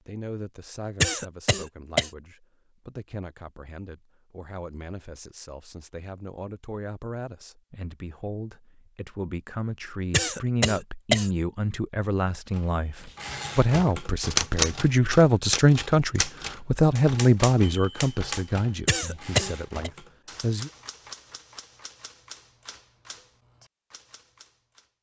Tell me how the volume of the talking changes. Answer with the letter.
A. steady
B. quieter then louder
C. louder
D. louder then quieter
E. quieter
C.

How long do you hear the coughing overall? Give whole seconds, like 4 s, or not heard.
3 s.